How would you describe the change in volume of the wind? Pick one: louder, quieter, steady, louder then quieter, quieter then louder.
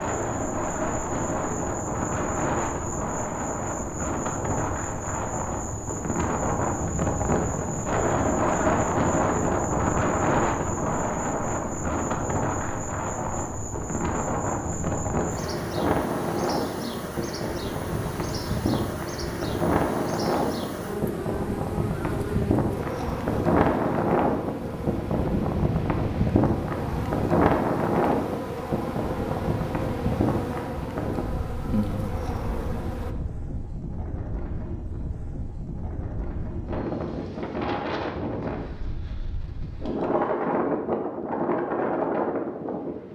steady.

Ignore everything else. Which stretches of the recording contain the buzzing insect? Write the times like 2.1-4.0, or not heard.
0.0-33.1.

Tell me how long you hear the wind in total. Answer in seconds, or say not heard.
43 s.